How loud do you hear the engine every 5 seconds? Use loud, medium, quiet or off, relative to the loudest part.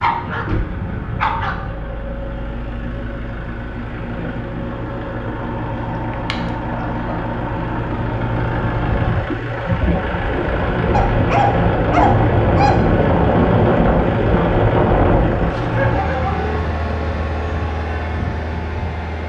quiet, medium, loud, medium.